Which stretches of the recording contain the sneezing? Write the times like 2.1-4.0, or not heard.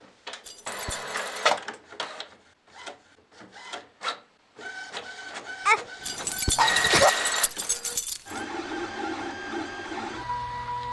5.7-7.1.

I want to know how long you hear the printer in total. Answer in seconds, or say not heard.
11 s.